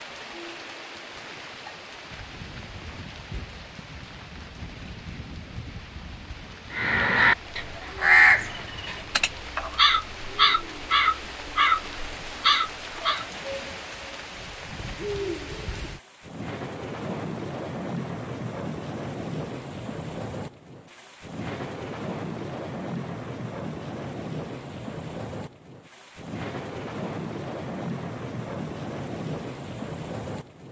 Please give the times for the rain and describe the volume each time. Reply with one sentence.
You can hear the rain from 0.0 to 30.6 s, getting louder.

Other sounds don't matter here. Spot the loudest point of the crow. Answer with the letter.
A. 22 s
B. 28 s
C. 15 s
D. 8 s
D.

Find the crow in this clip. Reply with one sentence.
You can hear the crow from 6.7 to 13.2 s.